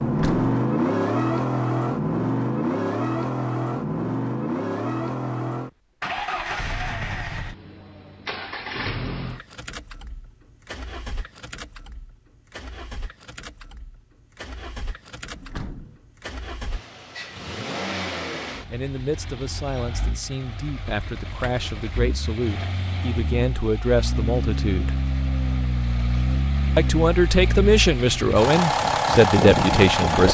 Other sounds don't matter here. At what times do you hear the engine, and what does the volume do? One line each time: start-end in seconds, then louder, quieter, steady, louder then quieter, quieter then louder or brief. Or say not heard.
0.0-30.2 quieter then louder.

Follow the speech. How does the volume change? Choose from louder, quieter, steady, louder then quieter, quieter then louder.
louder.